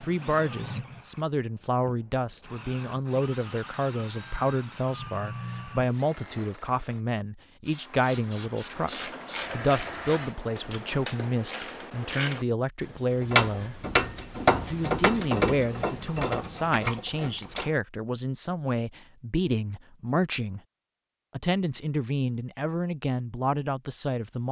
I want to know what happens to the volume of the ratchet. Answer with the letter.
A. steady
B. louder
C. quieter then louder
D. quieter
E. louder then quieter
E.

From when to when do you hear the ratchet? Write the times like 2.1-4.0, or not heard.
8.7-17.7.